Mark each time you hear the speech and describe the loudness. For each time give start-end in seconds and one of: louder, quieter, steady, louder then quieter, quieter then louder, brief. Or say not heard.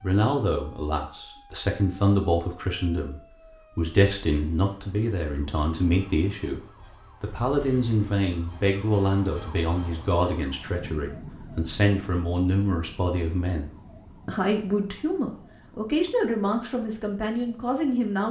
0.0-18.2 steady.